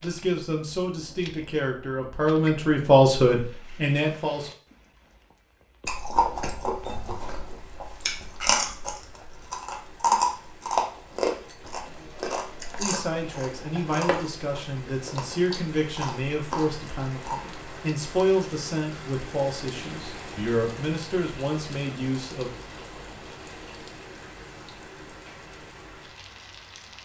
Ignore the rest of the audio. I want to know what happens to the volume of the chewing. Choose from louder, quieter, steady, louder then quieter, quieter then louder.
louder then quieter.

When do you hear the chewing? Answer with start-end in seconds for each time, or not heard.
5.8-17.5.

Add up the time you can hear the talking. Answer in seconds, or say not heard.
14 s.